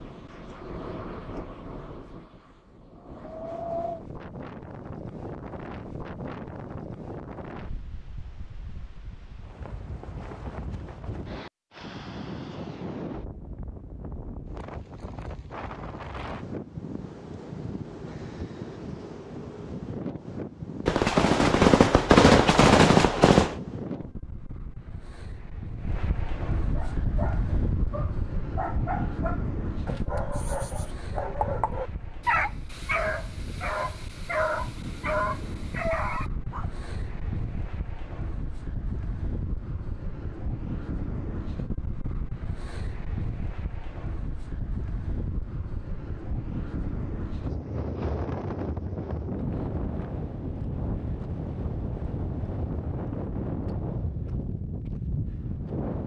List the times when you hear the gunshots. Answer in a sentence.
The gunshots can be heard from 20.9 to 23.6 s.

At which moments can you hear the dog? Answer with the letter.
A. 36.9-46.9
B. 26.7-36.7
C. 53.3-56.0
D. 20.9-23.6
B.